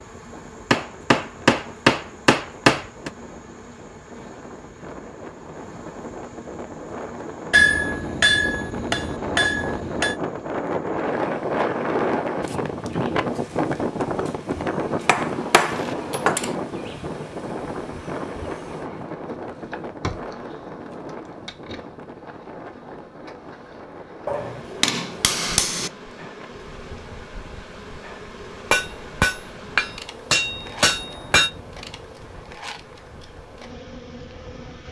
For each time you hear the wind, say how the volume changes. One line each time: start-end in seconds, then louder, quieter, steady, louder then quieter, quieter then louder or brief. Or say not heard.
0.0-34.8 louder then quieter.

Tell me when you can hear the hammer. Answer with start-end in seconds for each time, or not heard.
0.7-3.1, 7.5-10.2, 15.1-16.6, 24.2-25.9, 28.7-31.5.